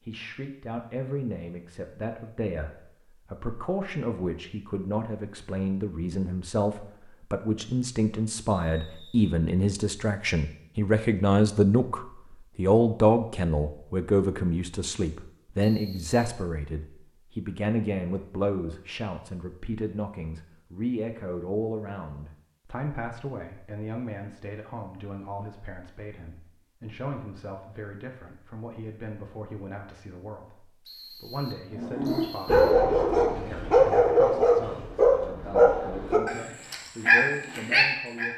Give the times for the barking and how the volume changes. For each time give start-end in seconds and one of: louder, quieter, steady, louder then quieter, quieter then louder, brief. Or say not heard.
31.8-38.3 steady.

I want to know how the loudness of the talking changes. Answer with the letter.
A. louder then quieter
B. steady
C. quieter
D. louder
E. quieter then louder
A.